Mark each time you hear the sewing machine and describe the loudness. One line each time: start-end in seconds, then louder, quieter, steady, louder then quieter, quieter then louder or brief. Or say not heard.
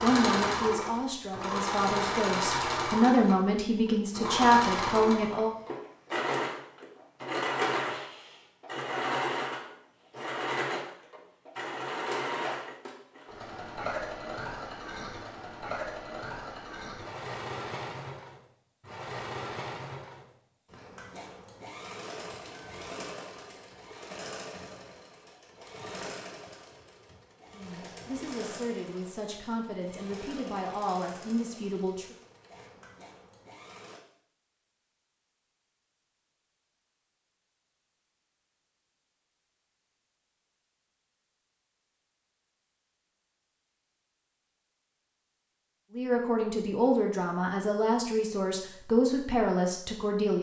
0.0-34.0 quieter.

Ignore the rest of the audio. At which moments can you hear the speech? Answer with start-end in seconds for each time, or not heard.
0.0-5.5, 27.5-32.0, 45.9-50.3.